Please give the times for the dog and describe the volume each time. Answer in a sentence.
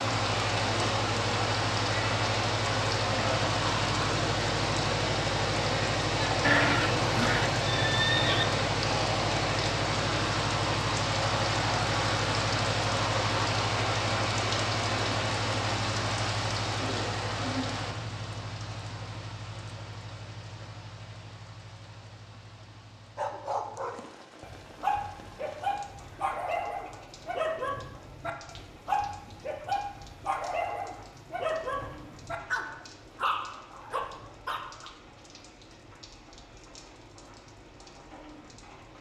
The dog can be heard from 23.1 to 34.9 s, at a steady volume.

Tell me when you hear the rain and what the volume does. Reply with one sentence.
You can hear the rain from 0.0 to 38.9 s, getting quieter.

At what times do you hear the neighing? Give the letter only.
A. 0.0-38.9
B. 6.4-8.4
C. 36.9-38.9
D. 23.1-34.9
B.